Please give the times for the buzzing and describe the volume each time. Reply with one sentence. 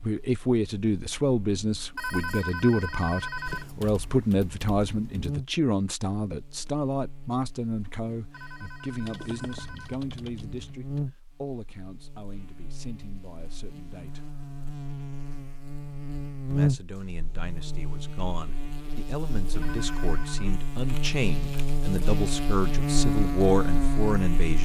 You can hear the buzzing from 0.0 to 24.6 s, getting louder.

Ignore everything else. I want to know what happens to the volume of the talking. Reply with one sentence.
The volume of the talking goes down, then up.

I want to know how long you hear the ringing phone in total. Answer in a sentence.
You can hear the ringing phone for 4 seconds altogether.